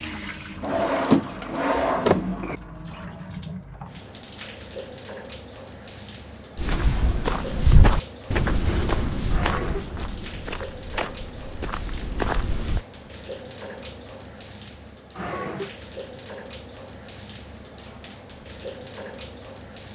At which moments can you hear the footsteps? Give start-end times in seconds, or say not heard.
6.5-12.8.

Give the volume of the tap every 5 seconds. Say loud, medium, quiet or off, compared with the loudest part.
loud, loud, medium, loud.